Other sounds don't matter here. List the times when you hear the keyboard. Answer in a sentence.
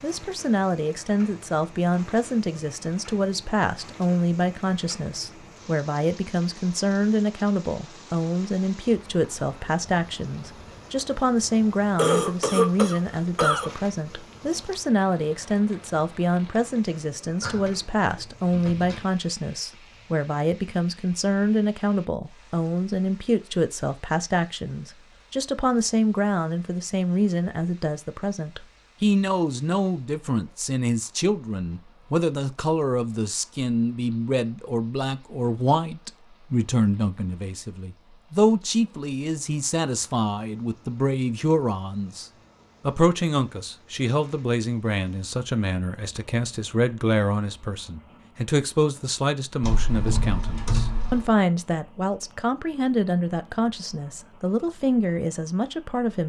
You can hear the keyboard from 17.4 to 19.0 s and from 49.6 to 51.3 s.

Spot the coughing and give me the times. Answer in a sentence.
You can hear the coughing from 11.9 to 13.7 s.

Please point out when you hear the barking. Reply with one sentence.
You can't hear the barking here.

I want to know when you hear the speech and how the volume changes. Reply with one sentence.
You can hear the speech from 0.0 to 56.2 s, at a steady volume.